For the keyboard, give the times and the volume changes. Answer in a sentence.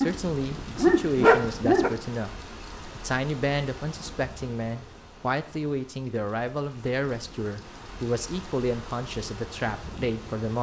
The keyboard can't be heard in this clip.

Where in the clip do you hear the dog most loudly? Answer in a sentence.
The volume of the dog peaks at 1 second.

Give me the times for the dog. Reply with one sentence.
You can hear the dog from 0.0 to 1.9 s.